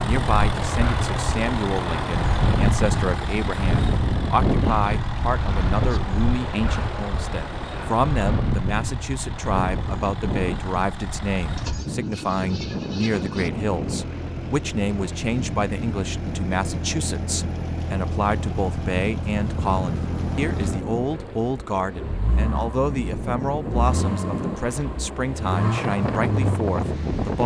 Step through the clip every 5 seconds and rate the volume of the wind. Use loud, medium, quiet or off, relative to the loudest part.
loud, loud, medium, medium, medium, loud.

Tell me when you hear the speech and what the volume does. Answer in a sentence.
The speech can be heard from 0.0 to 27.4 s, at a steady volume.